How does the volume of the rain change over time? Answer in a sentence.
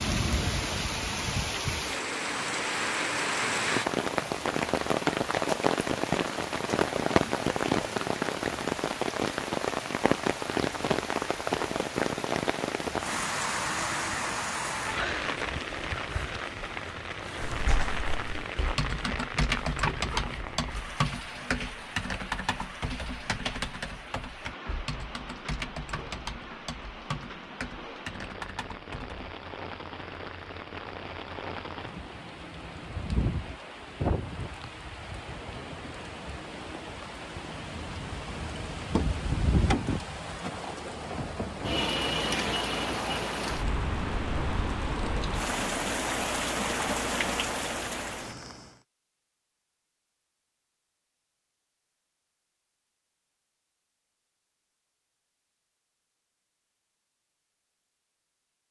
The loudness of the rain goes down, then up.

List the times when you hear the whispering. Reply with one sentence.
You can't hear the whispering here.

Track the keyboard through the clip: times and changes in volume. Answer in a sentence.
You can hear the keyboard from 17.4 to 29.4 s, getting quieter.